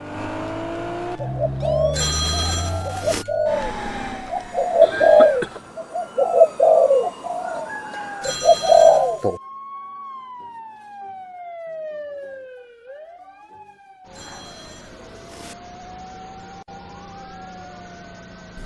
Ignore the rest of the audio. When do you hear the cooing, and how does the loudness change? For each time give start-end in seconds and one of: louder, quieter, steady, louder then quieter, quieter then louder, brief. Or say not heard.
1.1-9.4 louder.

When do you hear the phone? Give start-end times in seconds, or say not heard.
1.9-3.2, 8.2-9.2, 14.1-15.6.